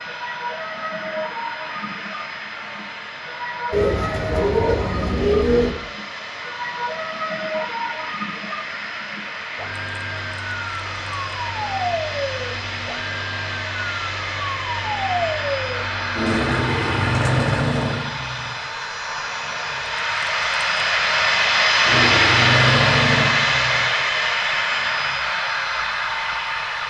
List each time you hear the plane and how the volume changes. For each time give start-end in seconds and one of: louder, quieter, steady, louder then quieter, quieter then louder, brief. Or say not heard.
0.0-26.8 louder.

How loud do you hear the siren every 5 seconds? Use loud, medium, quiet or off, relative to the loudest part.
medium, medium, medium, loud, loud, quiet.